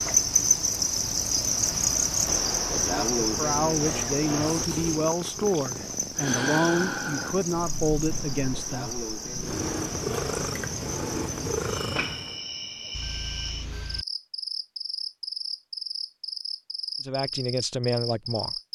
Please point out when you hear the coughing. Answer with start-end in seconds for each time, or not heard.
not heard.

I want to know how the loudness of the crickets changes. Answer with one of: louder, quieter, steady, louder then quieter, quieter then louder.
quieter.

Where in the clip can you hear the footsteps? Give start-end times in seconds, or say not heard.
not heard.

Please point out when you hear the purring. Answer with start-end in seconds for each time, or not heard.
0.0-12.4.